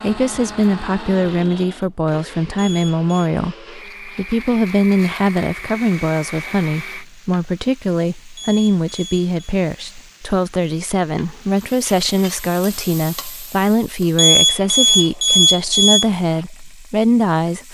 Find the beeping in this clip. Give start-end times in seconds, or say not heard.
2.5-3.1, 8.3-9.3, 14.2-16.1.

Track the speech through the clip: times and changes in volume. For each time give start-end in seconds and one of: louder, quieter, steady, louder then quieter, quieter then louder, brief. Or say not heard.
0.0-17.6 steady.